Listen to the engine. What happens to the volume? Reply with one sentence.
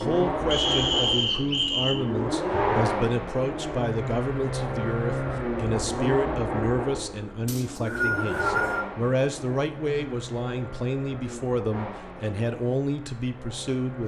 The volume of the engine goes down.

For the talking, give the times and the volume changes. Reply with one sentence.
The talking can be heard from 0.0 to 14.0 s, at a steady volume.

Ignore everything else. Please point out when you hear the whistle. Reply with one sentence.
The whistle can be heard from 0.5 to 1.9 s and from 7.5 to 8.8 s.